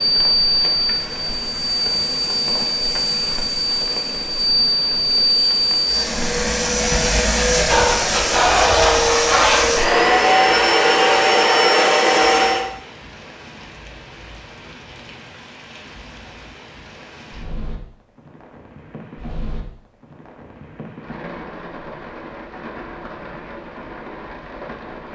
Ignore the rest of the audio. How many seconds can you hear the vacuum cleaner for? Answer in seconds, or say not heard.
13 s.